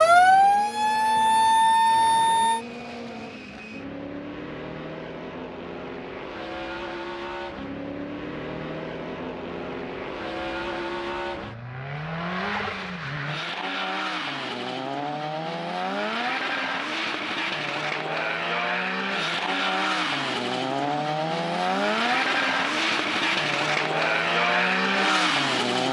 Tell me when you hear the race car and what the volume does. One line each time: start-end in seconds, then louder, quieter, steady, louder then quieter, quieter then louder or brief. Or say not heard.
0.0-25.8 louder.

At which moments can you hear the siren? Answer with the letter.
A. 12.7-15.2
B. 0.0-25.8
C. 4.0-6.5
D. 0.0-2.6
D.